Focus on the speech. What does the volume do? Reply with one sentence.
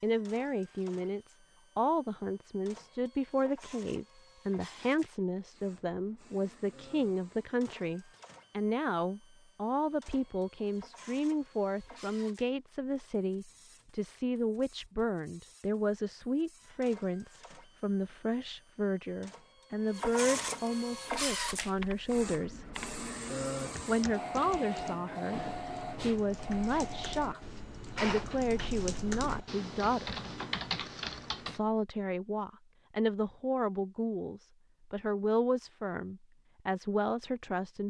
The volume of the speech stays about the same.